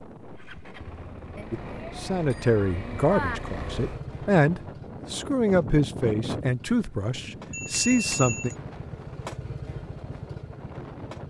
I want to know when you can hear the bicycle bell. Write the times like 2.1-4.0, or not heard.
1.4-3.4, 7.5-8.6.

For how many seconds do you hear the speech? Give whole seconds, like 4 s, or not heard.
7 s.